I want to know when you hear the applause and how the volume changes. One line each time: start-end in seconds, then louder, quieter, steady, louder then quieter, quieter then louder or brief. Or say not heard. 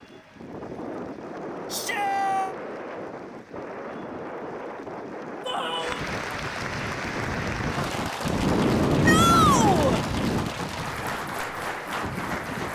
0.0-12.7 louder.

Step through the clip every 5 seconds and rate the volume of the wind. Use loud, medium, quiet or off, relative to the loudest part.
medium, loud, medium.